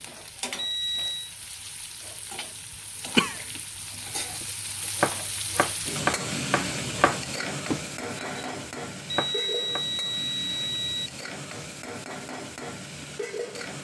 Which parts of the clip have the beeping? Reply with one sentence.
You can hear the beeping from 0.6 to 1.4 s and from 9.1 to 11.1 s.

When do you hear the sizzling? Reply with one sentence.
You can hear the sizzling from 0.0 to 13.7 s.